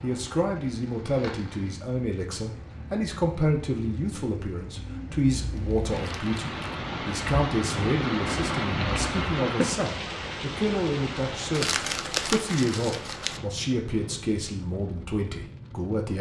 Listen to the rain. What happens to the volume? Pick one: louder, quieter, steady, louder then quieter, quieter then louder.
louder then quieter.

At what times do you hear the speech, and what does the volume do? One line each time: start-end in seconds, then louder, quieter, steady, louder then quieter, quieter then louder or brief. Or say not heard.
0.0-16.1 steady.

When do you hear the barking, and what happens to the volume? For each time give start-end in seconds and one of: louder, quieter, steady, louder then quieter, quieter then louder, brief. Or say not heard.
not heard.